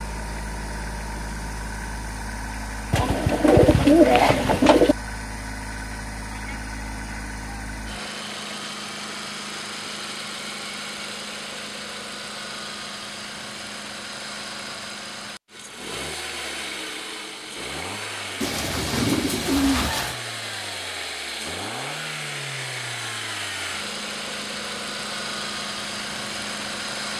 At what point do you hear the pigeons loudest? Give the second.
4 s.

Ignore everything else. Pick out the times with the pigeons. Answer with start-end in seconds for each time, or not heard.
2.9-5.0, 18.4-20.1.